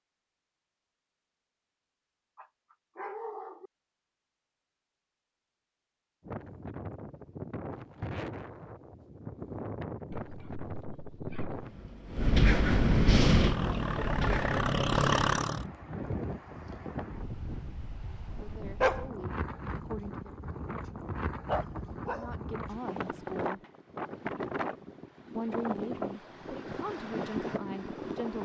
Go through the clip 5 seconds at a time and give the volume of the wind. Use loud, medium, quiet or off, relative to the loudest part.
off, medium, loud, medium, medium, medium.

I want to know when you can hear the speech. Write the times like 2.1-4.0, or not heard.
18.0-20.4, 22.1-23.6, 25.4-28.4.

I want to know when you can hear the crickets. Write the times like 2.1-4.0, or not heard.
not heard.